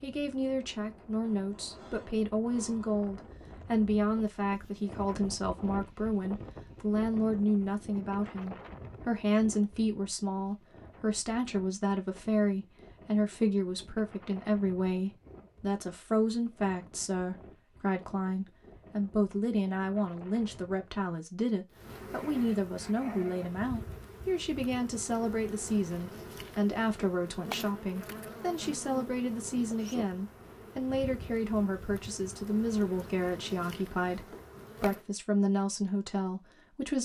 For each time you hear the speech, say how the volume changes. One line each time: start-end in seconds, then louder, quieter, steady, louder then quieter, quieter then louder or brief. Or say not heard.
0.0-37.0 steady.